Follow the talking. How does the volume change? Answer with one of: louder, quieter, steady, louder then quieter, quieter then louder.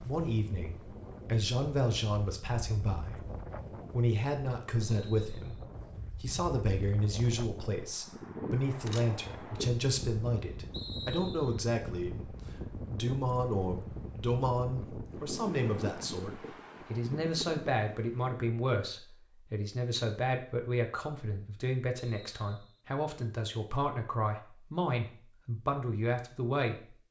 steady.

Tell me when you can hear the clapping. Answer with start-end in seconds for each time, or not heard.
not heard.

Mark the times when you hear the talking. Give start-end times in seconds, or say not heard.
0.0-26.9.